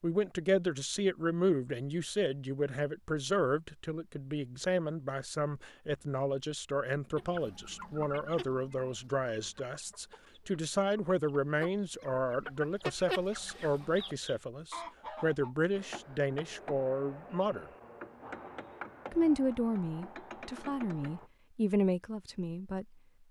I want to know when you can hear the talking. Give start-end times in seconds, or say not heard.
0.0-17.7, 19.1-22.9.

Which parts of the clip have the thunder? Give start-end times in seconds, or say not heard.
not heard.